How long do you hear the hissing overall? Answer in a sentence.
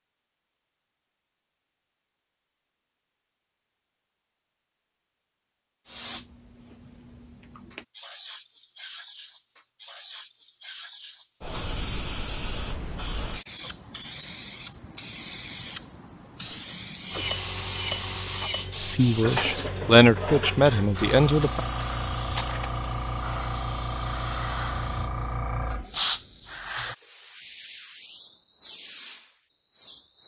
The hissing can be heard for 24 seconds in total.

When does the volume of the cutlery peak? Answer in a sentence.
The volume of the cutlery peaks at 18 seconds.